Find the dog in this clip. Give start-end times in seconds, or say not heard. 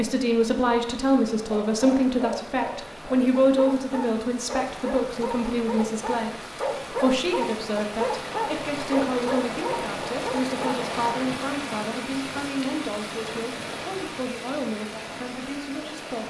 1.5-10.8.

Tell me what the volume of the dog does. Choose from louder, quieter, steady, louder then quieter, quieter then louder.
louder.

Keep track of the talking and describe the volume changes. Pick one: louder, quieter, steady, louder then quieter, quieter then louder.
quieter.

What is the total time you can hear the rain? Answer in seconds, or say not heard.
16 s.